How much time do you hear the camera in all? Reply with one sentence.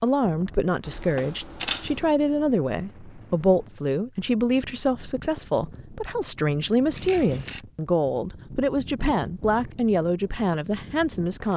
The camera can be heard for 2 seconds in total.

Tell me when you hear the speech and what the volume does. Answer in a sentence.
The speech can be heard from 0.0 to 11.5 s, at a steady volume.